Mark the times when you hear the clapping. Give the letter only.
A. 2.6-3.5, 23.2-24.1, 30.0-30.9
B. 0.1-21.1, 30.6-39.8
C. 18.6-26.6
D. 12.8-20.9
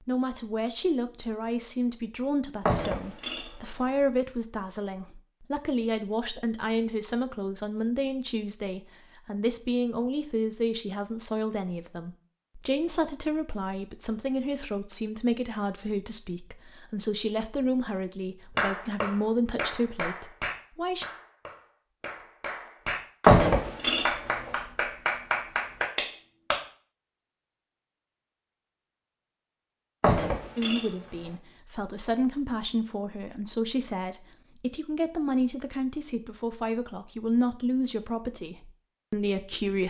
C.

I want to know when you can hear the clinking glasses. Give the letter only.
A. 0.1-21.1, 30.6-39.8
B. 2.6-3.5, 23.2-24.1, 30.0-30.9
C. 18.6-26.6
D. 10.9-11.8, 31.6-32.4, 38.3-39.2
B.